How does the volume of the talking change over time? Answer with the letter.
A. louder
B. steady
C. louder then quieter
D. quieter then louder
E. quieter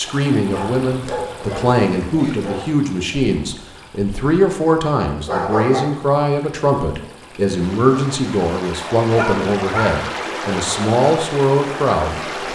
B.